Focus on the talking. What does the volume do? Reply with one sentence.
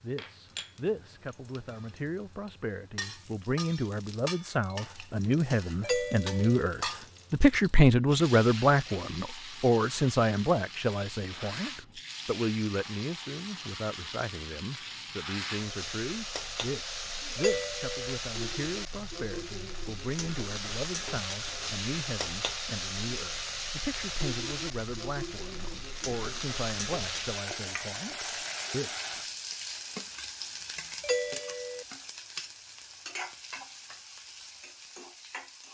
The loudness of the talking goes up, then down.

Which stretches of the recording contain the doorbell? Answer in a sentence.
The doorbell can be heard from 5.8 to 6.7 s, from 17.4 to 18.2 s and from 31.0 to 31.9 s.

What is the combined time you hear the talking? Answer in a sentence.
The talking can be heard for 29 seconds in total.